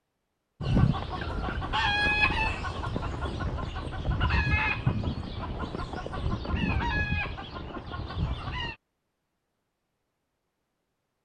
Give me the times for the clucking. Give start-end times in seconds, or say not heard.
0.6-8.8.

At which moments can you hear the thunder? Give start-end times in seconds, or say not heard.
4.3-7.2.